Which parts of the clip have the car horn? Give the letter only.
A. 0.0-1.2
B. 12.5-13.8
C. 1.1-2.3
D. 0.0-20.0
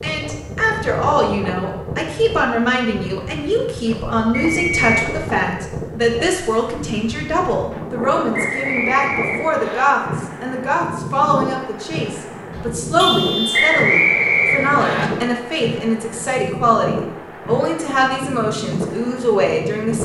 B.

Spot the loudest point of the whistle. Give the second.
14 s.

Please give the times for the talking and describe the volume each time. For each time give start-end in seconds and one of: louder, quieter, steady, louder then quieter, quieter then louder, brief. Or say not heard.
0.0-20.0 steady.